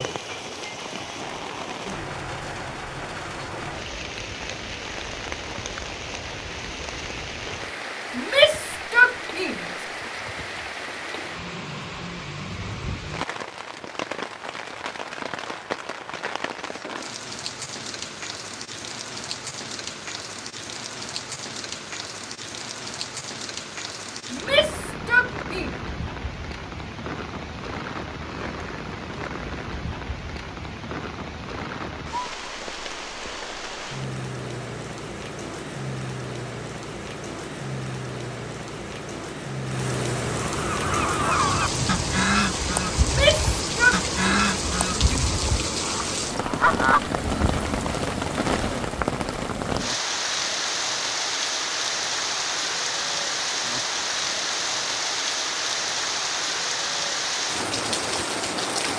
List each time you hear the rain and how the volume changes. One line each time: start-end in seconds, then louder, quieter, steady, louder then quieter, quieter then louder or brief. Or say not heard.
0.0-58.9 louder.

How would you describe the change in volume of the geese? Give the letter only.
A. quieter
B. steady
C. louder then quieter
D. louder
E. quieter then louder
E.